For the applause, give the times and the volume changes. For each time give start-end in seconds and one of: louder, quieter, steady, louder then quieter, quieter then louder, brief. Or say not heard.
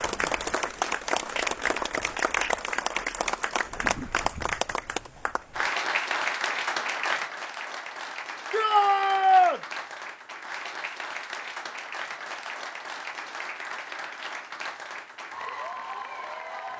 0.0-16.7 quieter.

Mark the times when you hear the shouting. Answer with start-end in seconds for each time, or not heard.
8.5-9.6.